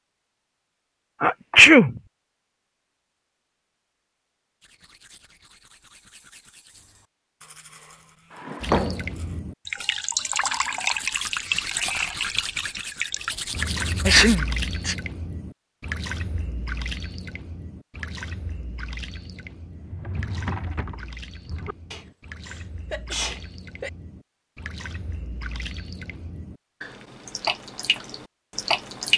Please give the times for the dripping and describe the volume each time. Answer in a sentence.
You can hear the dripping from 8.6 to 29.1 s, getting quieter then louder.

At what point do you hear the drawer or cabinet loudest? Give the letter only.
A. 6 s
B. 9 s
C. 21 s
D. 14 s
B.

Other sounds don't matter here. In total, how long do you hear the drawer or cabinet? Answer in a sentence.
You can hear the drawer or cabinet for 3 seconds altogether.